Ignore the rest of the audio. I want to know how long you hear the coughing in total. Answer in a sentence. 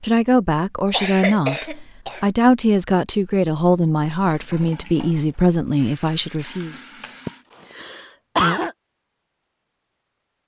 You can hear the coughing for 3 seconds altogether.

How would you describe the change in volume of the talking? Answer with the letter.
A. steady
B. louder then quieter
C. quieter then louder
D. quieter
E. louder
A.